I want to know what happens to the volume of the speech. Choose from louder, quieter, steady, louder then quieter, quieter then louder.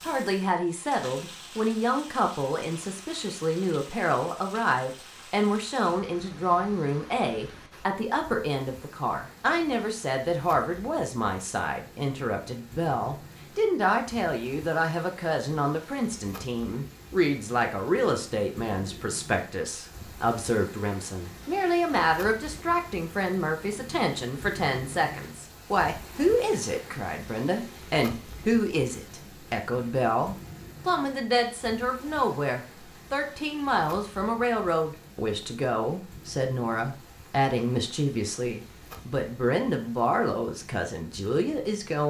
steady.